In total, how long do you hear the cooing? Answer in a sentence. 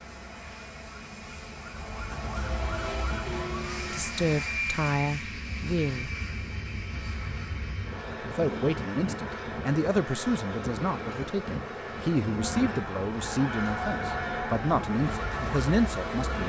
You can't hear the cooing here.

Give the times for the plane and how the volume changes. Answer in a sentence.
You can hear the plane from 0.0 to 16.4 s, getting louder.